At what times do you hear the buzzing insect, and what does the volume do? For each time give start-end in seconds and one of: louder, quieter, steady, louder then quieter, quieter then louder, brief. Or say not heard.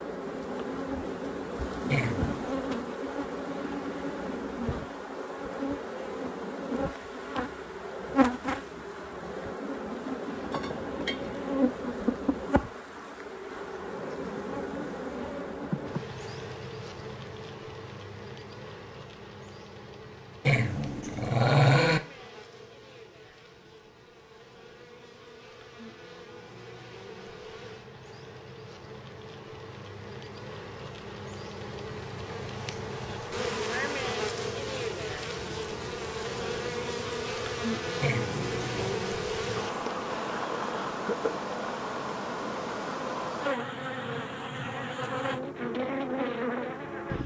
0.0-47.2 quieter then louder.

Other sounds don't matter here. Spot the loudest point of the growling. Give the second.
22 s.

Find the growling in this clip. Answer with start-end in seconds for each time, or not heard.
1.9-2.5, 20.4-22.0, 38.0-39.0.